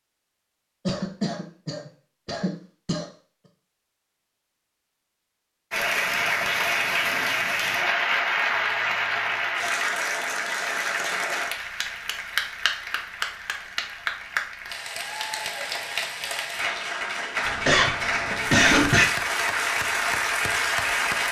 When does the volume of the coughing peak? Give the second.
19 s.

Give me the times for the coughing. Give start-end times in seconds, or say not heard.
0.8-3.0, 17.4-19.1.